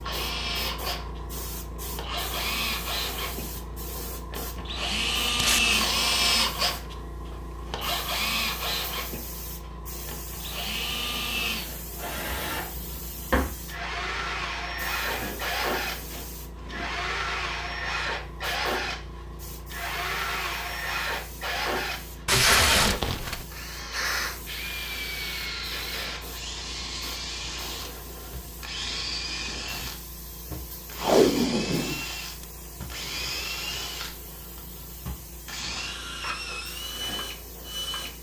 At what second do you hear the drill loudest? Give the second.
6 s.